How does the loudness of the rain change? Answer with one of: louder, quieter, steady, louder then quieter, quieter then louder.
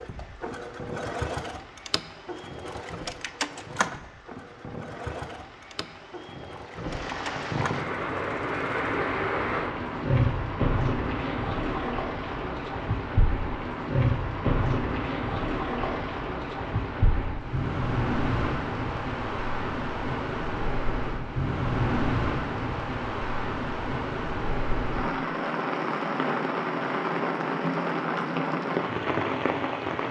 louder.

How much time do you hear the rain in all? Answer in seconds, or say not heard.
30 s.